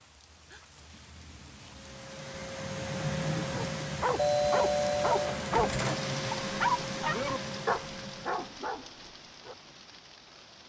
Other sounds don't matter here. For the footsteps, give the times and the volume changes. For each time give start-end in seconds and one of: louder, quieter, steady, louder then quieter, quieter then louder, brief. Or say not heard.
not heard.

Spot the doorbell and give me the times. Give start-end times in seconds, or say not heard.
4.2-5.5.